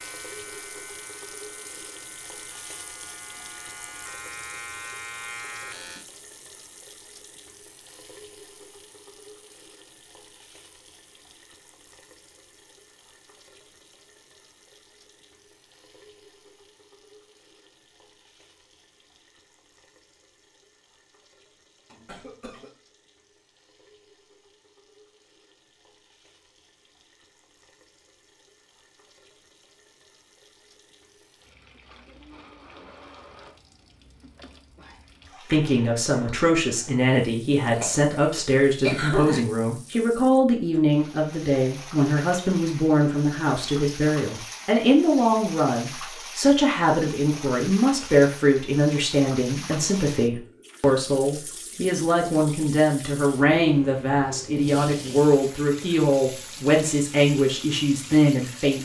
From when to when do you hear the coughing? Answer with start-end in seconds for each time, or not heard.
21.9-22.7, 37.7-39.4.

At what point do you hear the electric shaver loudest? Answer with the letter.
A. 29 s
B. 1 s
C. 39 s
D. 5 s
D.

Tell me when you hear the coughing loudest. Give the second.
39 s.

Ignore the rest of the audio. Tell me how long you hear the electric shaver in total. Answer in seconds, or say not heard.
6 s.